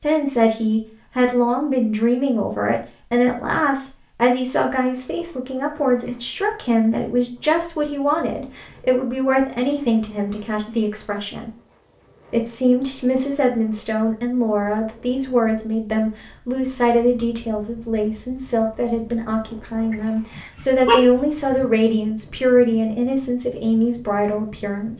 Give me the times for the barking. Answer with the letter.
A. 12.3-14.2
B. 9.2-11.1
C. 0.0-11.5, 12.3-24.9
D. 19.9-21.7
D.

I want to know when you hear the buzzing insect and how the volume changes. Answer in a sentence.
The buzzing insect can't be heard in this clip.